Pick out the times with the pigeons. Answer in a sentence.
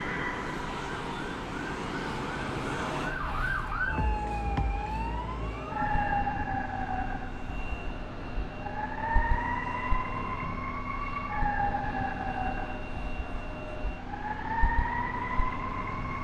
The pigeons can't be heard in this clip.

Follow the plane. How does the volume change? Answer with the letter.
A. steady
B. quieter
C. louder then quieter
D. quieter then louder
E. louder
B.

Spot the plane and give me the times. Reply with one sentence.
You can hear the plane from 0.0 to 16.1 s.